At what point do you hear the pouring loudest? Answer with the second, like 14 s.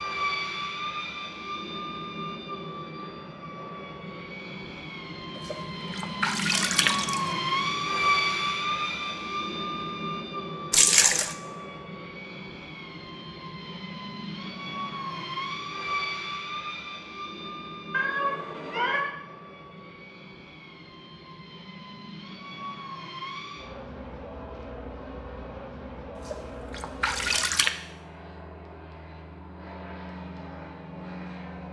11 s.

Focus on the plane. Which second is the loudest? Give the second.
8 s.